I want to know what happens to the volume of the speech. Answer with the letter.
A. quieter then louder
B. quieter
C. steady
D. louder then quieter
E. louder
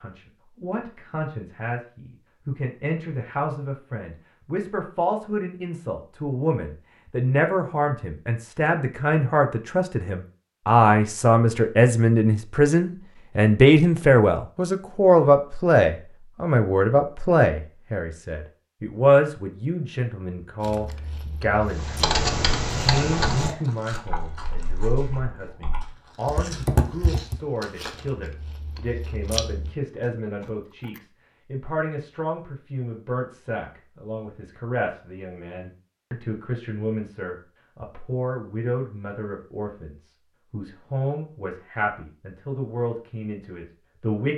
D.